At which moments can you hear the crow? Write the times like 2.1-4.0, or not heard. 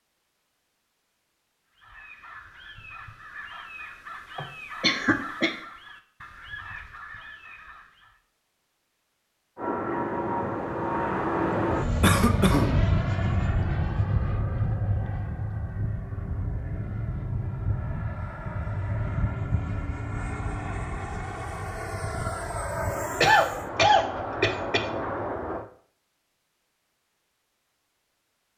1.7-8.2.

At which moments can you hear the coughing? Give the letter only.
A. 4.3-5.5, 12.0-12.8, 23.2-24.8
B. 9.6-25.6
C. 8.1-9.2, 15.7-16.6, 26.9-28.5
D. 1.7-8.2
A.